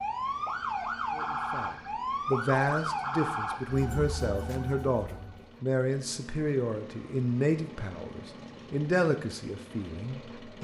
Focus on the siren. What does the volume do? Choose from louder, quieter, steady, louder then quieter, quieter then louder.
quieter.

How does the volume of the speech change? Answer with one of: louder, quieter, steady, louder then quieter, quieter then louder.
steady.